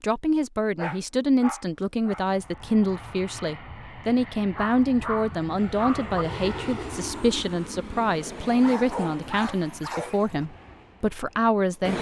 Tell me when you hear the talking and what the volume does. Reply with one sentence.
The talking can be heard from 0.0 to 11.9 s, at a steady volume.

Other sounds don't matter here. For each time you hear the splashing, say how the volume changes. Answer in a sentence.
The splashing can't be heard in this clip.